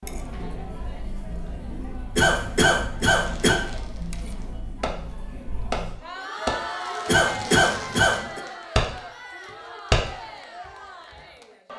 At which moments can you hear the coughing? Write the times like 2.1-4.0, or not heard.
2.1-3.6, 7.0-8.4.